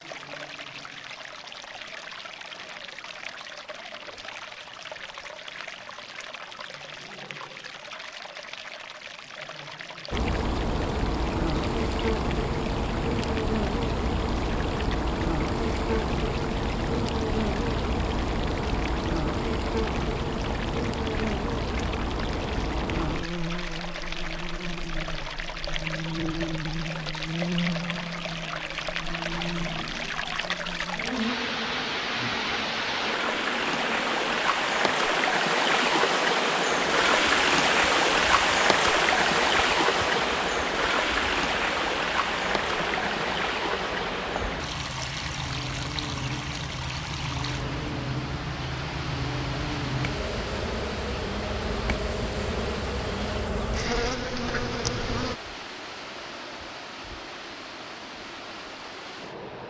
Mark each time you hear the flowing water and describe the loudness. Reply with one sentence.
You can hear the flowing water from 0.0 to 59.6 s, getting louder then quieter.